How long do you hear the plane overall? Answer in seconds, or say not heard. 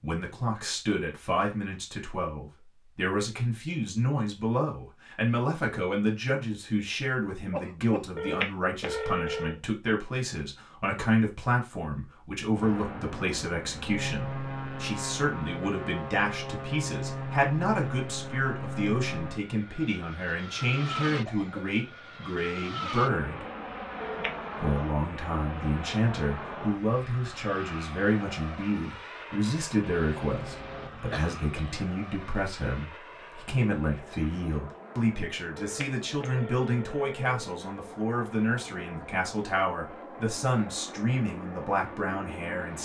30 s.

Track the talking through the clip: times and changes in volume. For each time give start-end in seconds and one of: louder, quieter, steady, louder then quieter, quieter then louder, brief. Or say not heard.
0.0-23.4 steady
24.6-42.8 steady.